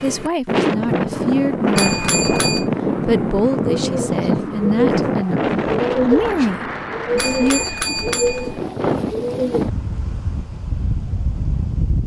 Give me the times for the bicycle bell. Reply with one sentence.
You can hear the bicycle bell from 1.8 to 2.6 s and from 7.2 to 8.7 s.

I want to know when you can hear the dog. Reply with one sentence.
The dog can't be heard in this clip.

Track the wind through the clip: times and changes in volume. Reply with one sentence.
You can hear the wind from 0.0 to 12.0 s, getting quieter.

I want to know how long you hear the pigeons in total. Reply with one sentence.
You can hear the pigeons for 6 seconds altogether.